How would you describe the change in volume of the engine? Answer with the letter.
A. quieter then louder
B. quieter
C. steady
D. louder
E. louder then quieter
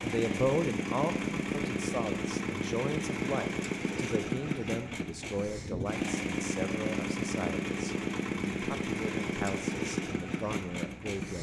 C.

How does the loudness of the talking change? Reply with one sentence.
The loudness of the talking goes down.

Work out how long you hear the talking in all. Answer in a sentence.
You can hear the talking for 11 seconds altogether.